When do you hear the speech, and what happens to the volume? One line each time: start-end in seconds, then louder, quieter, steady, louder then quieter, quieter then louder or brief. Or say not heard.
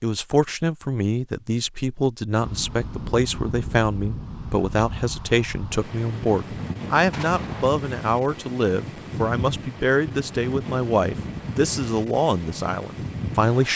0.0-13.7 steady.